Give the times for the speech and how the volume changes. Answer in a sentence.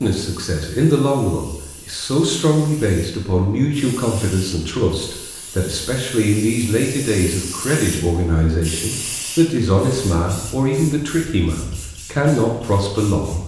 The speech can be heard from 0.0 to 13.4 s, at a steady volume.